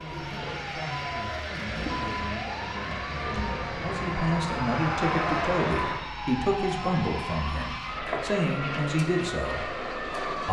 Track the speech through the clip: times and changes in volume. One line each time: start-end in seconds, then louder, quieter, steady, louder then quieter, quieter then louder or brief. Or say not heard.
0.0-10.4 louder.